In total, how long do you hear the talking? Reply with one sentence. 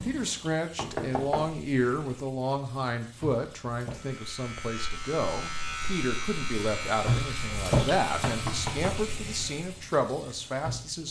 The talking can be heard for 11 seconds in total.